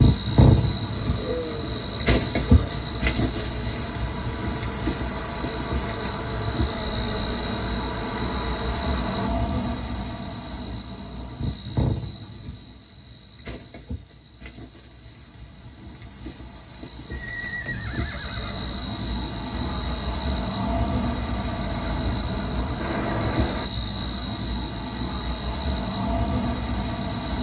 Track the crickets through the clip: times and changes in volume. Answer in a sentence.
You can hear the crickets from 0.0 to 27.3 s, getting quieter then louder.